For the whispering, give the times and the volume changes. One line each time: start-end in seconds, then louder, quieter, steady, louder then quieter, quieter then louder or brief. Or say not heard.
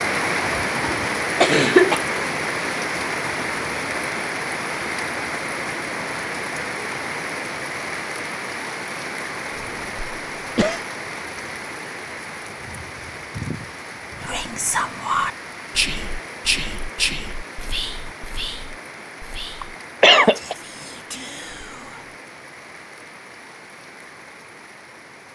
14.2-22.1 quieter.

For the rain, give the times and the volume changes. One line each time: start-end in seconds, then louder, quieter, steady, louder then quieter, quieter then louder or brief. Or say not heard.
0.0-25.3 quieter.